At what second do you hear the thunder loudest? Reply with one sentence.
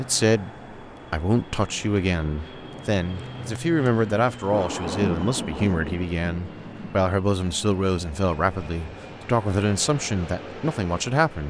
The volume of the thunder peaks at 5 seconds.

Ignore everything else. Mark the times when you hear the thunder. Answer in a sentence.
You can hear the thunder from 4.5 to 7.1 s.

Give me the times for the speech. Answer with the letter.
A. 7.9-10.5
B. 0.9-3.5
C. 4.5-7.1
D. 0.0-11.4
D.